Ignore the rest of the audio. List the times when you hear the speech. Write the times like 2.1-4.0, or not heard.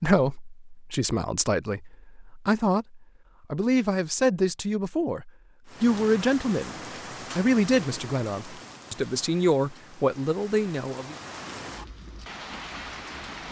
0.0-6.8, 7.3-11.2.